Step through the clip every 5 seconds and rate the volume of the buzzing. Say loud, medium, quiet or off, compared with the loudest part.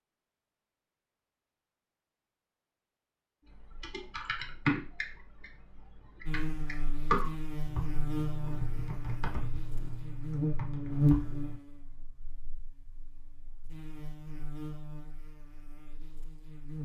off, medium, loud, medium.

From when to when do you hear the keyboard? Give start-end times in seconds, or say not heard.
3.5-11.6.